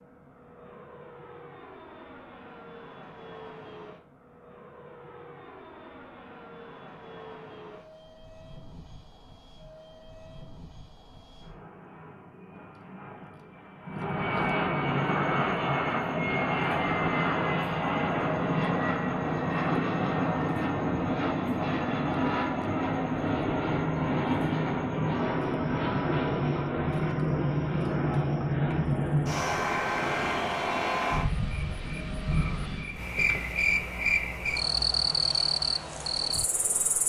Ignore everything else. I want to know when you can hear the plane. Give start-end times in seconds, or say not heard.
0.0-37.0.